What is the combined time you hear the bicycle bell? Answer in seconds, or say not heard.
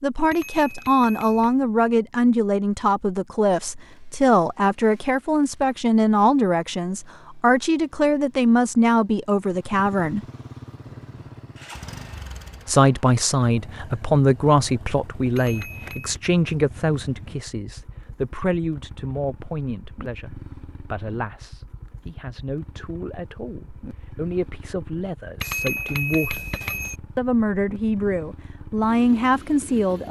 4 s.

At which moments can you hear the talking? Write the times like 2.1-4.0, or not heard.
0.0-10.2, 12.7-26.5, 27.1-30.0.